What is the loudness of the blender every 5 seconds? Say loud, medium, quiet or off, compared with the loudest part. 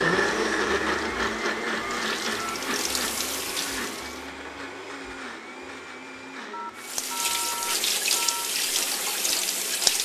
loud, quiet.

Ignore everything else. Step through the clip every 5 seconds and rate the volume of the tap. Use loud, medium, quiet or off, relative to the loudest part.
medium, loud.